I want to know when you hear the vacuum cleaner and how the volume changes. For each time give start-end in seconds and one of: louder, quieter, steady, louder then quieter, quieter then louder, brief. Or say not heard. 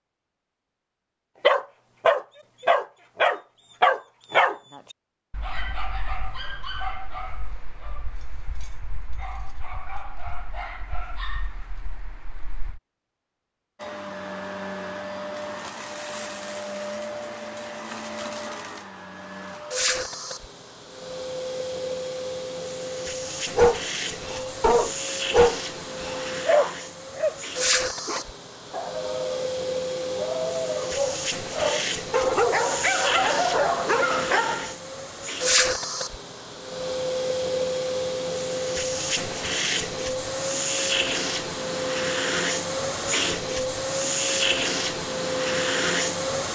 13.8-46.5 louder.